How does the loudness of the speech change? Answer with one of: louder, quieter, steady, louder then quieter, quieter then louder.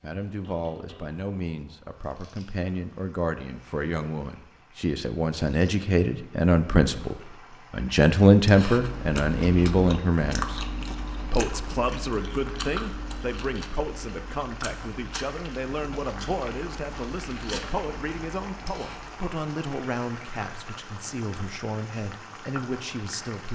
louder then quieter.